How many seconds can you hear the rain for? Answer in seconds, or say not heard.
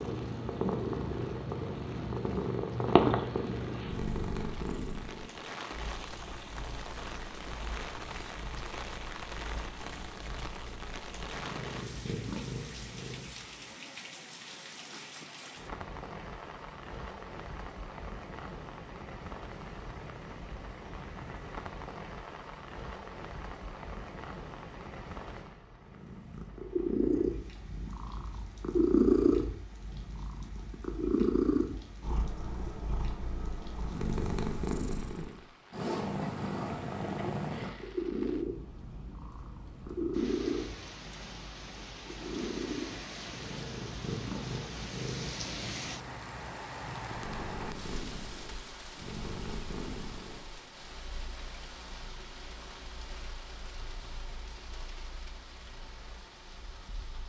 57 s.